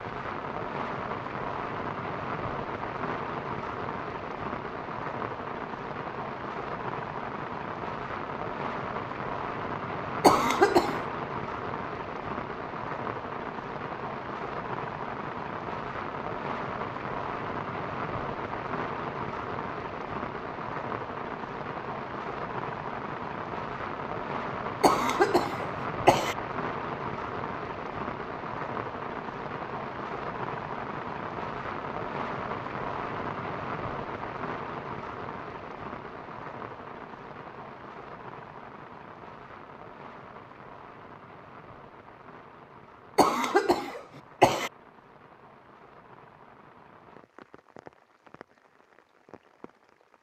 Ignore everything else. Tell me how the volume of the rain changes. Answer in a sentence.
The volume of the rain goes down.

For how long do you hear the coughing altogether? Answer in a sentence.
The coughing can be heard for 4 seconds in total.